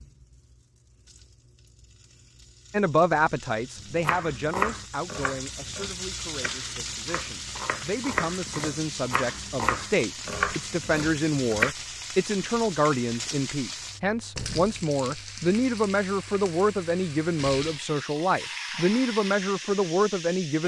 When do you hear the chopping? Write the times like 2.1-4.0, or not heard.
3.8-11.8.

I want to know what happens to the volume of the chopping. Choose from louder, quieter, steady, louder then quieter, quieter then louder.
quieter then louder.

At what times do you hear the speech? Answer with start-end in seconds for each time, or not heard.
2.7-20.6.